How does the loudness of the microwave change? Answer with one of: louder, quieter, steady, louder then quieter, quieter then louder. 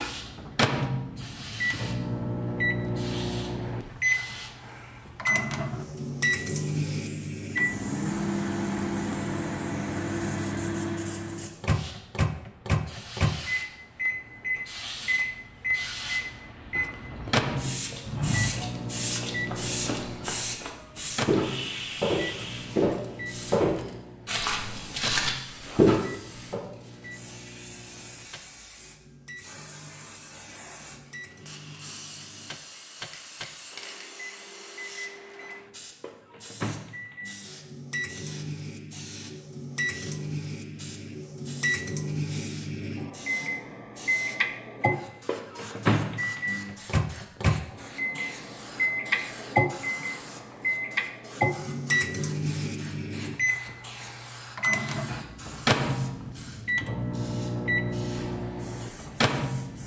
quieter then louder.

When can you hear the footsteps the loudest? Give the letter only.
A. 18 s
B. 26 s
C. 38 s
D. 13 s
B.